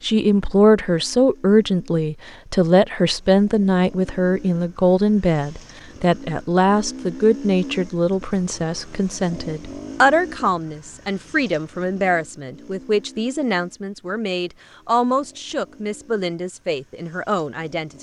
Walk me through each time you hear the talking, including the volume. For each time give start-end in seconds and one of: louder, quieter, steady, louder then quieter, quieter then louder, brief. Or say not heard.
0.0-17.9 quieter.